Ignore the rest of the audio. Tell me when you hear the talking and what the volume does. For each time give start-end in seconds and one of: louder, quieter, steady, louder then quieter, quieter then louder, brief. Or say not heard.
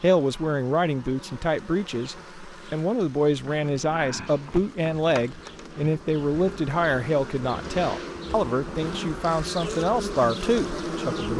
0.0-11.3 steady.